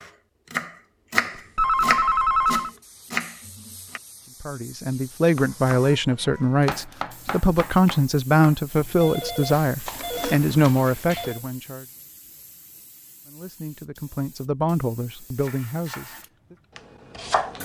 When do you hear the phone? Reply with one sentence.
The phone can be heard from 1.4 to 2.7 s and from 9.0 to 11.4 s.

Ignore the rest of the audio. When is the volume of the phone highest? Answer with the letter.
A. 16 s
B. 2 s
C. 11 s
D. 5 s
B.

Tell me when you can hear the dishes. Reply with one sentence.
The dishes can't be heard in this clip.